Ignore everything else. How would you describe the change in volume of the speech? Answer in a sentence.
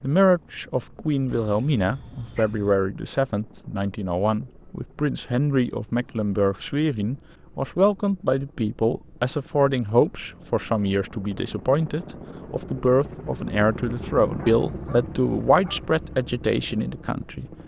The loudness of the speech stays about the same.